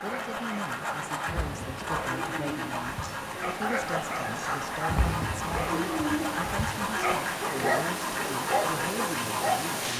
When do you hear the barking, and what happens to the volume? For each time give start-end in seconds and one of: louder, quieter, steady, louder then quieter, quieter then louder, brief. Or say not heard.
0.0-9.7 louder.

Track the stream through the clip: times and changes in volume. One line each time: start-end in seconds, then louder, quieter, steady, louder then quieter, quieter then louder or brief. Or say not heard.
0.0-9.9 louder.